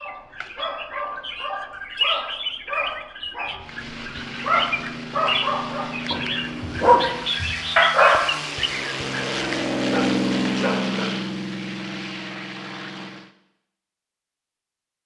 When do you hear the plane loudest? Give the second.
10 s.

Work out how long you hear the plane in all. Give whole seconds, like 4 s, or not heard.
10 s.